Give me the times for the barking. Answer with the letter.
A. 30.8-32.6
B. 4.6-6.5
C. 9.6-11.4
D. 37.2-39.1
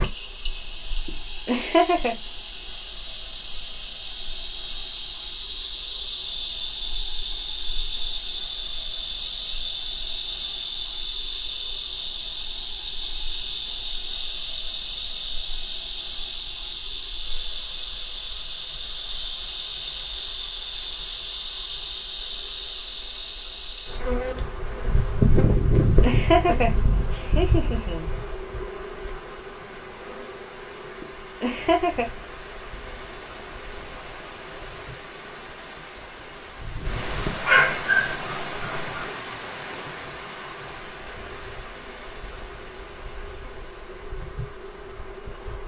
D.